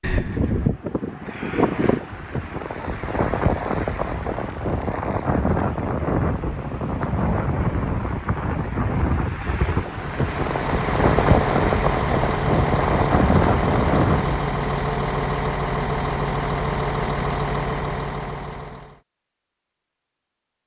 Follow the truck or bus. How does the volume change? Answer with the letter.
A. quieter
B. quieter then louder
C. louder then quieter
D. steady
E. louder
D.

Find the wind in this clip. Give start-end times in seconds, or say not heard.
0.0-14.3.